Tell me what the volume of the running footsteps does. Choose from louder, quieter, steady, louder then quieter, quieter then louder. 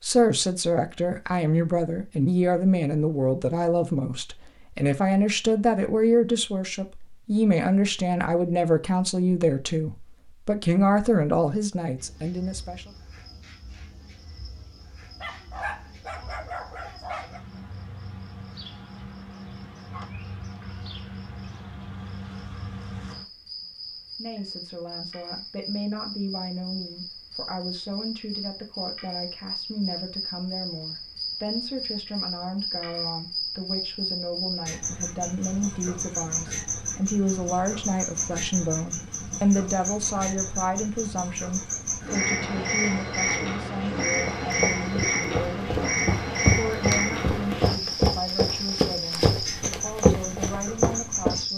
louder.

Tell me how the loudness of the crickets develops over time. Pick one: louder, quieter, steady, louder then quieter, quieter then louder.
louder.